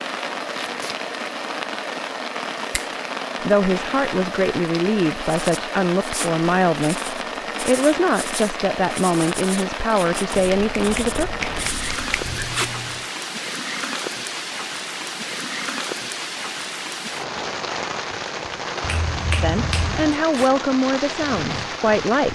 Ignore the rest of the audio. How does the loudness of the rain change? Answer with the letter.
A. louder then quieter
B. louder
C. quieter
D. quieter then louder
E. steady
E.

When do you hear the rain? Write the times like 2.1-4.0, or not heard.
0.0-22.2.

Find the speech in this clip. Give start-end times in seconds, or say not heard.
3.4-11.3, 19.4-22.2.